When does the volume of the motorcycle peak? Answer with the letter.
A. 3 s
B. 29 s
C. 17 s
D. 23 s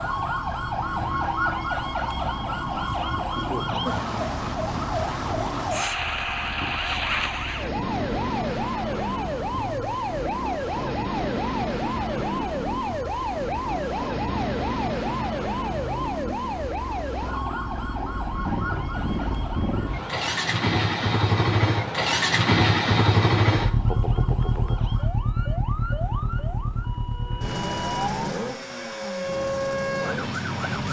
D.